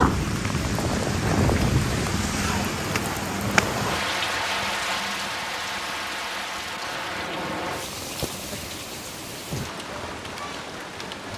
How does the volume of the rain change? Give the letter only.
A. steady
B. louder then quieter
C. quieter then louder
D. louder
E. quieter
E.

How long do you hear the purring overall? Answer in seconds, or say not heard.
11 s.